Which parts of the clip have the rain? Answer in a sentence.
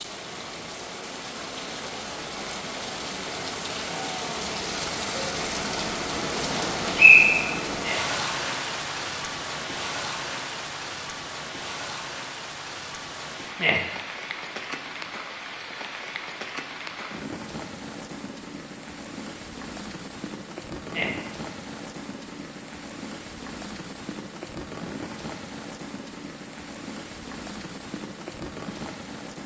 You can hear the rain from 0.0 to 29.4 s.